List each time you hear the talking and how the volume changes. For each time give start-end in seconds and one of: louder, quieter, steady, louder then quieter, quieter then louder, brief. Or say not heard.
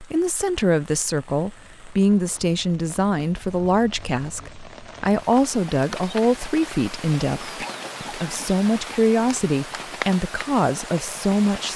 0.0-11.7 steady.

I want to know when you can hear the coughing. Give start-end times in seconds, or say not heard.
7.6-9.0.